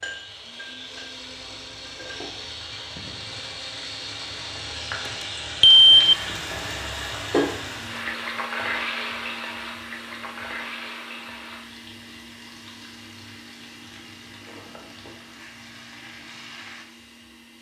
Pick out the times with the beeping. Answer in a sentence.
You can hear the beeping from 5.6 to 6.2 s.